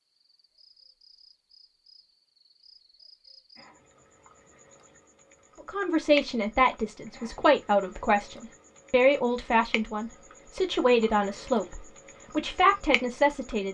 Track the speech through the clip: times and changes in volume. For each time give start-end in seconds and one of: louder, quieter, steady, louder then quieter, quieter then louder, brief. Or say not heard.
5.7-13.7 steady.